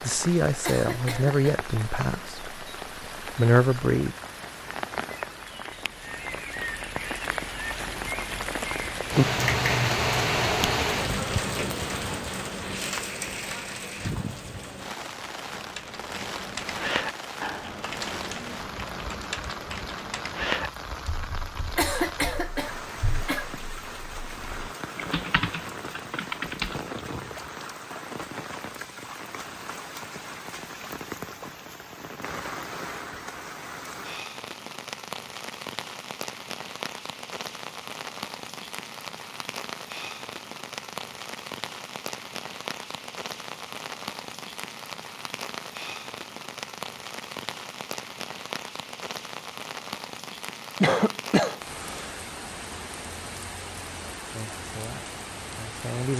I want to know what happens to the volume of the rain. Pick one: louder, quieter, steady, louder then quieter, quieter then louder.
quieter.